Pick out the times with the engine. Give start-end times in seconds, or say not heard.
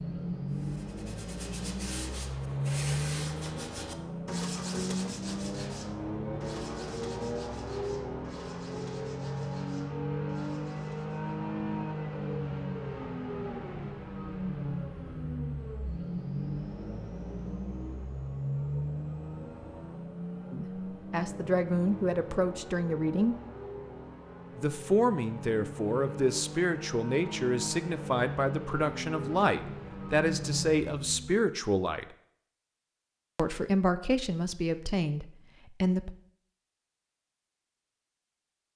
0.0-31.4.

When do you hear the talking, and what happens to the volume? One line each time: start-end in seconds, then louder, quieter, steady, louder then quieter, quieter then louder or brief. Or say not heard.
20.5-23.4 brief
24.6-32.0 steady
33.4-36.1 brief.